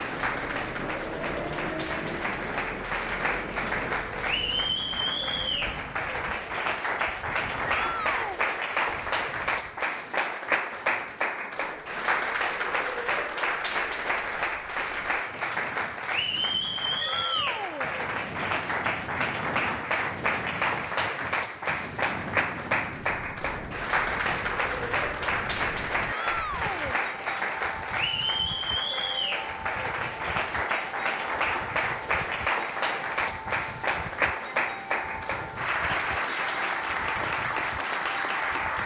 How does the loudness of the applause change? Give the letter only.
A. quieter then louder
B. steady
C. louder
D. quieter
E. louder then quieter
B.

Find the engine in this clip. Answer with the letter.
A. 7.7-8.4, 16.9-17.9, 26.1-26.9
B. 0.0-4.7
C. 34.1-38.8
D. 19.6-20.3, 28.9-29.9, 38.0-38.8
B.